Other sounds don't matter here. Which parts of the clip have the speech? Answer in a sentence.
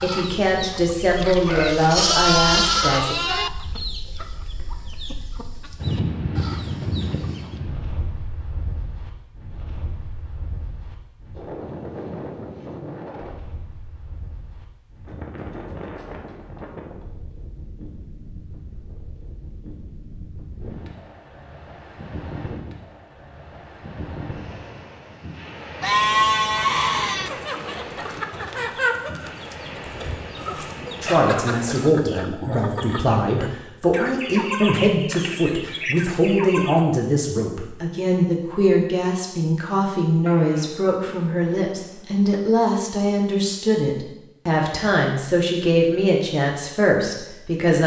The speech can be heard from 0.0 to 3.1 s and from 31.0 to 47.8 s.